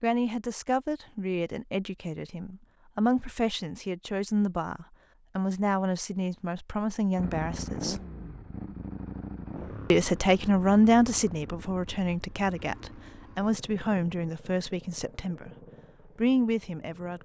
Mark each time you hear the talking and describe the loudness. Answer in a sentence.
The talking can be heard from 0.0 to 8.0 s, at a steady volume; and from 9.9 to 17.2 s, getting quieter then louder.